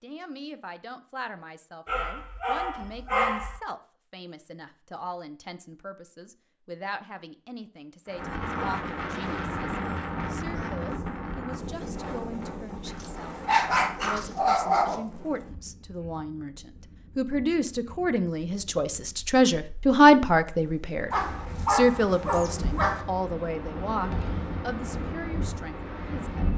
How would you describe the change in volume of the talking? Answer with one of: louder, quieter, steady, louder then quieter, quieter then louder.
louder then quieter.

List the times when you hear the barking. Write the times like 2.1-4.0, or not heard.
1.9-3.6, 13.0-15.0, 21.1-23.1.